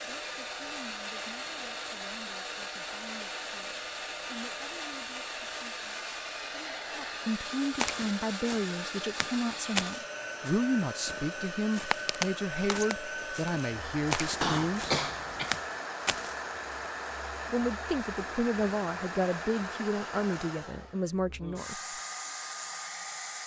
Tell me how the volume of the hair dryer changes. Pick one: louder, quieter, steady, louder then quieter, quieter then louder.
steady.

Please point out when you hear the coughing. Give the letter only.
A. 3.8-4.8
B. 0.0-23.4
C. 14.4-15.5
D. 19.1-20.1
C.